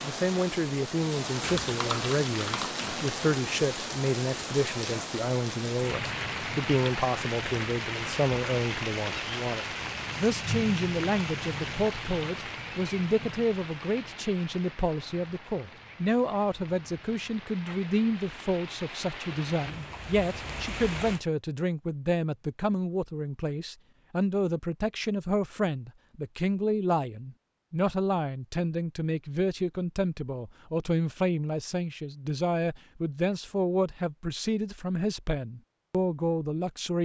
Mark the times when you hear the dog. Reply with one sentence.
You can't hear the dog here.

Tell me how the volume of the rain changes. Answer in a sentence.
The loudness of the rain goes down.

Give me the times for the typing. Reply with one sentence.
The typing can be heard from 1.4 to 3.1 s.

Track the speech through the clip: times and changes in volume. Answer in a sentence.
The speech can be heard from 0.0 to 36.9 s, at a steady volume.